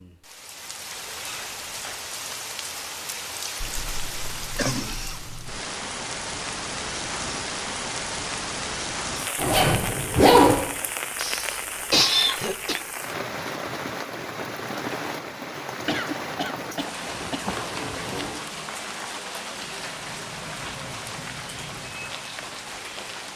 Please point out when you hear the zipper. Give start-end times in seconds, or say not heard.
0.9-1.9, 9.3-10.6, 17.1-18.4.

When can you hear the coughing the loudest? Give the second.
12 s.